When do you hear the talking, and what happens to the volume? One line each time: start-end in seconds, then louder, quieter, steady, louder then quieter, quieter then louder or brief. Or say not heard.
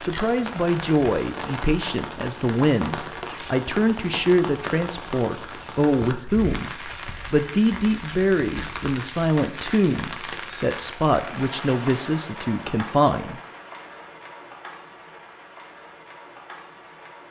0.0-13.4 steady.